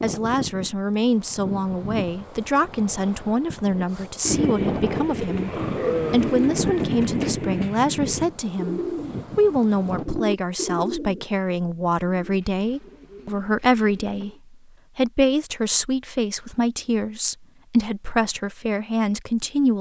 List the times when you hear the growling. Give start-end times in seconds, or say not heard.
5.5-6.4.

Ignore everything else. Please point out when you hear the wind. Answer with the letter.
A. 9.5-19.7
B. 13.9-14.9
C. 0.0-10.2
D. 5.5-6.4
C.